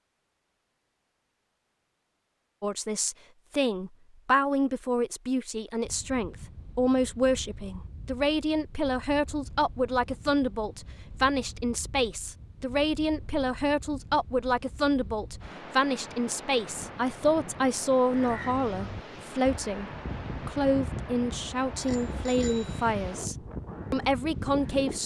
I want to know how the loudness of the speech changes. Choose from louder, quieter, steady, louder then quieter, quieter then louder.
steady.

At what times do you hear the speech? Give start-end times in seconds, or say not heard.
2.6-25.0.